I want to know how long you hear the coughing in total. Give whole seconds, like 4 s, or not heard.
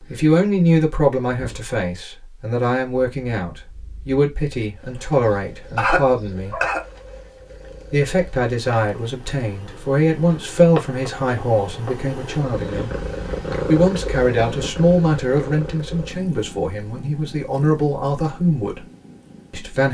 2 s.